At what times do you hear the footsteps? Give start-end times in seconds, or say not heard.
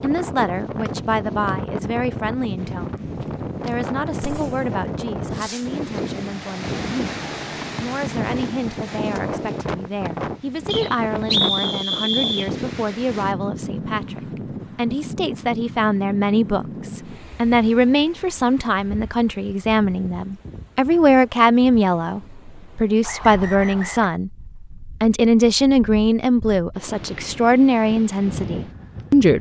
not heard.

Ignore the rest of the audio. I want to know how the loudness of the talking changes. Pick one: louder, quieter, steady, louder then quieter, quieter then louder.
louder.